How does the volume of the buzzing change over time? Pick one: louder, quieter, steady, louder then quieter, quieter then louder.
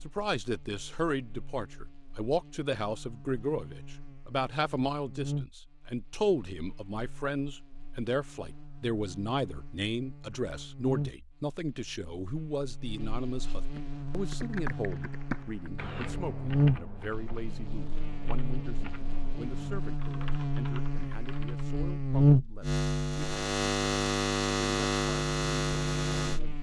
quieter then louder.